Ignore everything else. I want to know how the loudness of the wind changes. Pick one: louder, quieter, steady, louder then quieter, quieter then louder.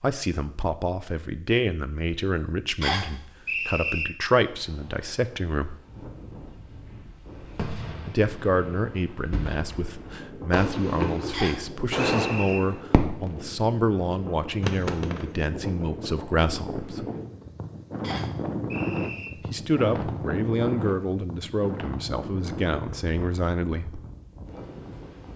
louder then quieter.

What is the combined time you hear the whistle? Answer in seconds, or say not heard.
4 s.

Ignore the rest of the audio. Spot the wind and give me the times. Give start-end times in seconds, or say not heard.
4.5-25.3.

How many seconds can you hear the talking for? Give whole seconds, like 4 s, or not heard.
19 s.